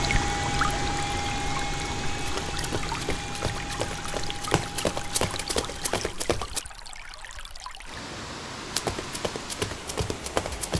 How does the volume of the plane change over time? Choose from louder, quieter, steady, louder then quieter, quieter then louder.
quieter.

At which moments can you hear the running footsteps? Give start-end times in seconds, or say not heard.
2.1-6.6, 8.7-10.7.